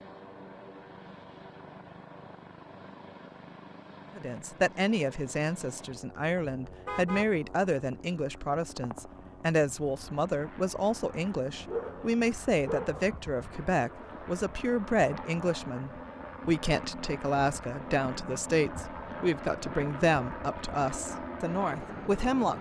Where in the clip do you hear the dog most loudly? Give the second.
12 s.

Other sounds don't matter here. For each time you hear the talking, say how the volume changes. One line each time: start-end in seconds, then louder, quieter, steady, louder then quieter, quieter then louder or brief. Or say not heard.
4.2-22.5 steady.